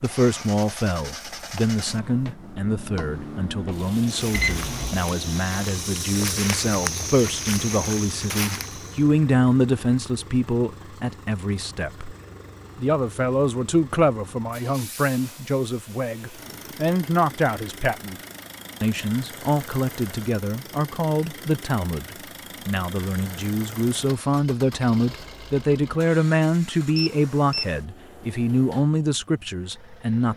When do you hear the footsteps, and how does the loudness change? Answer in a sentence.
The footsteps can be heard from 1.4 to 9.1 s, getting louder.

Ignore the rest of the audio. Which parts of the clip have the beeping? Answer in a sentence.
You can hear the beeping from 4.3 to 5.0 s and from 26.9 to 27.7 s.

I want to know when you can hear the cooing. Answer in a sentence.
The cooing can't be heard in this clip.